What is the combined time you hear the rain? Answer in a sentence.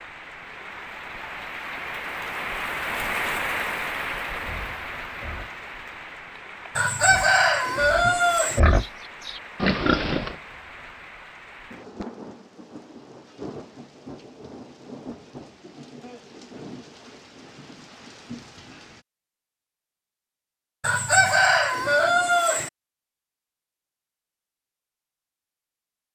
You can hear the rain for 19 seconds altogether.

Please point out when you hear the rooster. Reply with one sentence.
The rooster can be heard from 6.8 to 8.6 s and from 20.8 to 22.7 s.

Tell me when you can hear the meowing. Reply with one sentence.
You can't hear the meowing here.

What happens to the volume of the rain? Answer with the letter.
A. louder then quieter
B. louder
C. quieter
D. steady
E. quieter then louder
C.